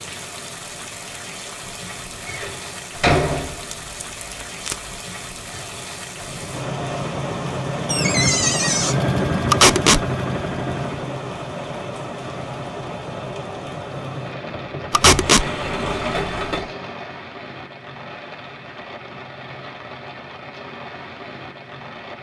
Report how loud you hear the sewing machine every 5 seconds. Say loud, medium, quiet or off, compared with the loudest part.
off, loud, medium, medium, off.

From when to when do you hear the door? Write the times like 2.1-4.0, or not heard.
2.2-3.8, 7.8-8.9, 14.9-16.7.